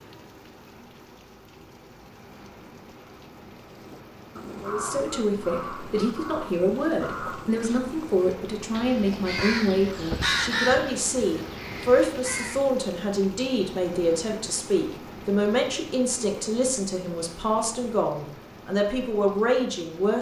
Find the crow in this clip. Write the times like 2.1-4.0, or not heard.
3.8-12.7.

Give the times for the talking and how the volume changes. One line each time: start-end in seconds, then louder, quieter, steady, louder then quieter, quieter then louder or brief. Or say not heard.
4.6-20.1 steady.